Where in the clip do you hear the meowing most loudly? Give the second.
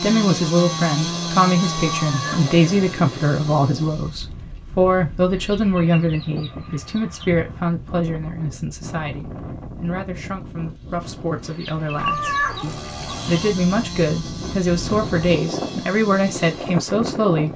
12 s.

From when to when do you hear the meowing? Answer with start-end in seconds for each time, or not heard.
1.9-2.5, 11.9-12.8.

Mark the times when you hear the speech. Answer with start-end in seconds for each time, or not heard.
0.0-17.5.